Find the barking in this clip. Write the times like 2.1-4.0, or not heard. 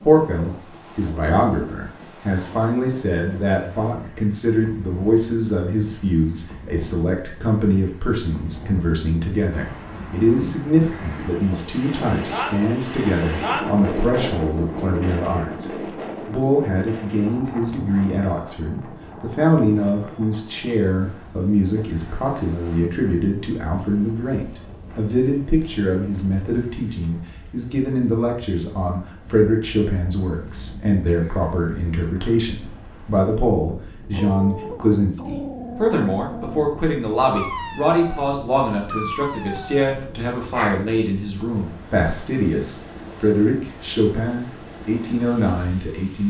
34.1-40.9.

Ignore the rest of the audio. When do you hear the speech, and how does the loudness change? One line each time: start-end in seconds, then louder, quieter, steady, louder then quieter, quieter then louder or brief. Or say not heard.
0.0-46.2 steady.